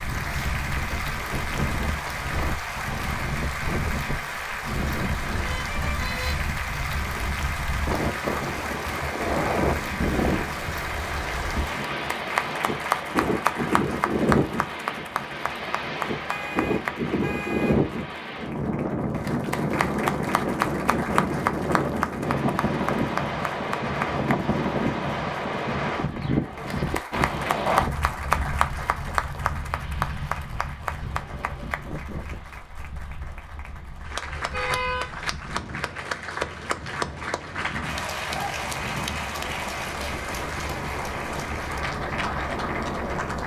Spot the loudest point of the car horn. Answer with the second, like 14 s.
35 s.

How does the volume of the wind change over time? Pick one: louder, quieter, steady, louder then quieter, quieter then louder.
louder then quieter.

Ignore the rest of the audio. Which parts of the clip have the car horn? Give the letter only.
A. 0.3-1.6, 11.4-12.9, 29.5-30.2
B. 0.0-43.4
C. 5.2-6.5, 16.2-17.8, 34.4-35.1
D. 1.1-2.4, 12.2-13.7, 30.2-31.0
C.